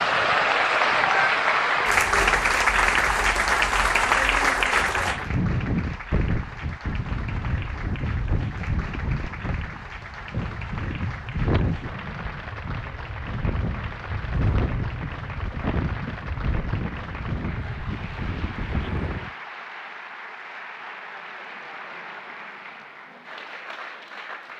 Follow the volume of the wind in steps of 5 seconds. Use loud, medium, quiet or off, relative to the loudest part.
quiet, loud, loud, loud, off.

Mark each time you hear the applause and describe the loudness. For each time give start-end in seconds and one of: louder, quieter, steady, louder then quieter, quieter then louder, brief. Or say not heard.
0.0-24.5 quieter.